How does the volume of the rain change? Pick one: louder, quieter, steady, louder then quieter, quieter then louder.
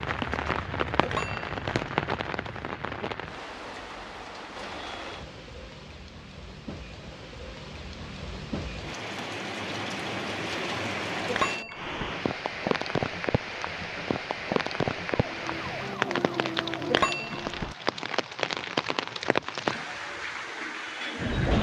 quieter then louder.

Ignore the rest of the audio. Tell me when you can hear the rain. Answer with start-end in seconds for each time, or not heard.
0.0-21.5.